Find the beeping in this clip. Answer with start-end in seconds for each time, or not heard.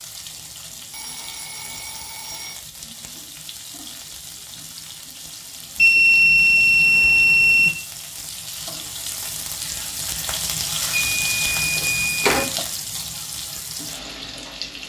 0.9-2.6, 5.8-7.7, 10.9-12.4.